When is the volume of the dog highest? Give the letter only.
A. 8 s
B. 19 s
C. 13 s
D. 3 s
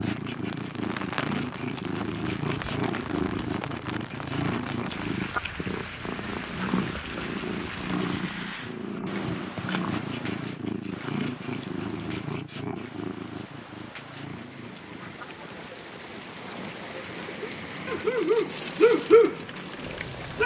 B.